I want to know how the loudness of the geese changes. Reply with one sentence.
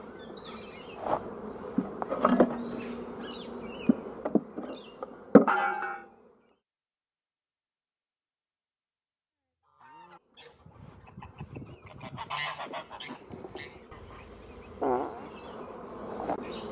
The volume of the geese goes up, then down.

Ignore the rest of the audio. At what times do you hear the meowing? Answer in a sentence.
You can't hear the meowing here.